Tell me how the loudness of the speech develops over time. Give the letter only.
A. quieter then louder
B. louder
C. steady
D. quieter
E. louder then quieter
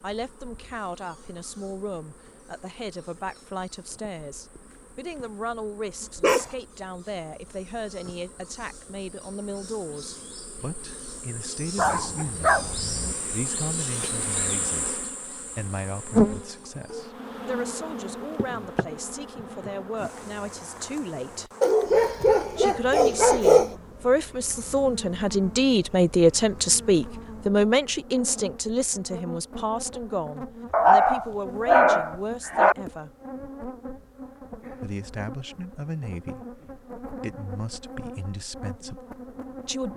E.